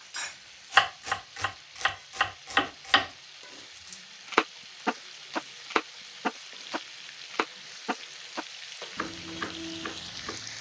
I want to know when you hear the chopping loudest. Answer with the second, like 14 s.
1 s.